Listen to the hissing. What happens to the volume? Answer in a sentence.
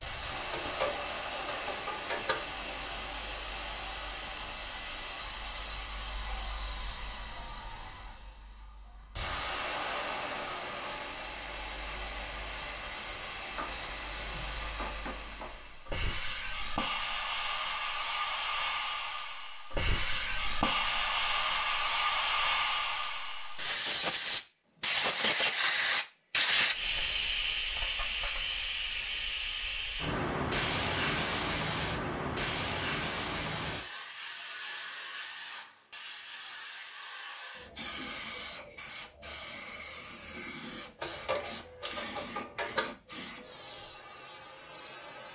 The volume of the hissing goes up, then down.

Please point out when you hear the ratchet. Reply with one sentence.
The ratchet can be heard from 0.5 to 2.5 s and from 41.0 to 43.0 s.